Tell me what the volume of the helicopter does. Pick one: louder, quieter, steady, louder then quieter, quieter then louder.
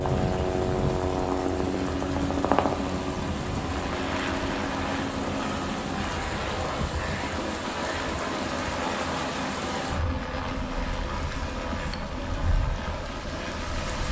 quieter.